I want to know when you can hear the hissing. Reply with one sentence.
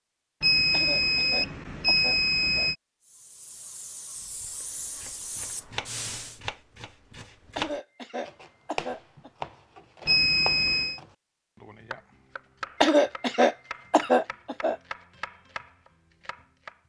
The hissing can be heard from 3.0 to 6.4 s.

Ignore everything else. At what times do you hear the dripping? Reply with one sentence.
The dripping can't be heard in this clip.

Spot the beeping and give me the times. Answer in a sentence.
The beeping can be heard from 0.4 to 2.8 s and from 10.1 to 11.0 s.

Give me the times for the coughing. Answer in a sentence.
The coughing can be heard from 0.7 to 2.7 s, from 7.5 to 9.3 s and from 12.8 to 14.8 s.